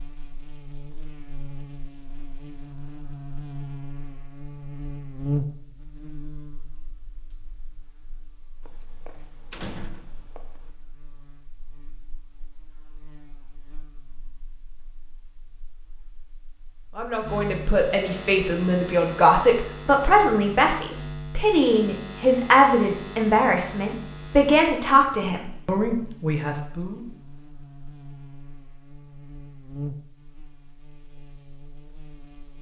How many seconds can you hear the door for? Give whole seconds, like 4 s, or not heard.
2 s.